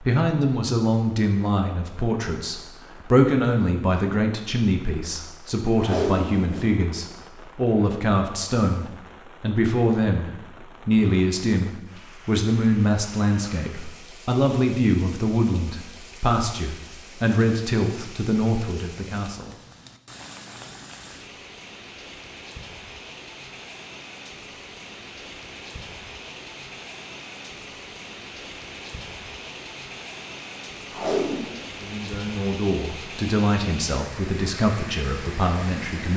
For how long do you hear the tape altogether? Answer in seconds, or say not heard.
2 s.